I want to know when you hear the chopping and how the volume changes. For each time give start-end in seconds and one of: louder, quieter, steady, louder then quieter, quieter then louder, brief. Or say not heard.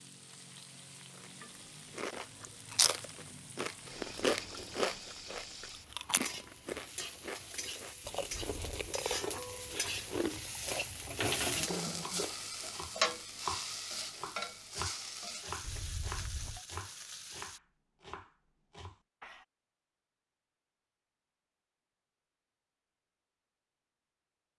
12.0-19.4 quieter.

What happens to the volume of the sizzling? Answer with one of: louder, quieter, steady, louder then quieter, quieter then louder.
louder then quieter.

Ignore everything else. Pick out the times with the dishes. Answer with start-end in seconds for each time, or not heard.
not heard.